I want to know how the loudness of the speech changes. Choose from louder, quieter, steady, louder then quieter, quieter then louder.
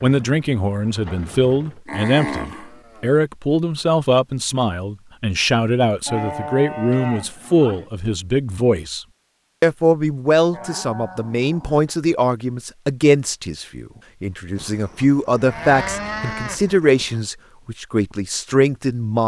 steady.